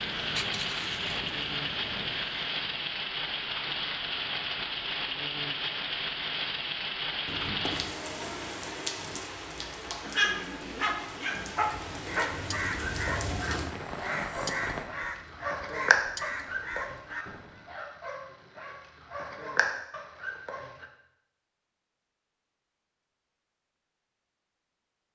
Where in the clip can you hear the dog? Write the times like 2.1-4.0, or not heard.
10.0-20.9.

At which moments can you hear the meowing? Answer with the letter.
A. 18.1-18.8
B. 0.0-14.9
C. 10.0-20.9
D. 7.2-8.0
D.